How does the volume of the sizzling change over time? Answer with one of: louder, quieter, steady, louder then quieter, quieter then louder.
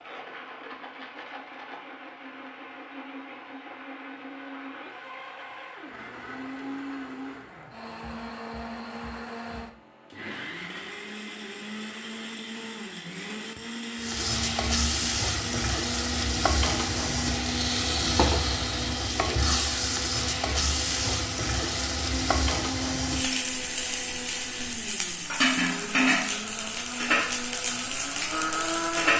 steady.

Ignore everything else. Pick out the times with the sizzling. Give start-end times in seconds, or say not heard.
13.9-29.1.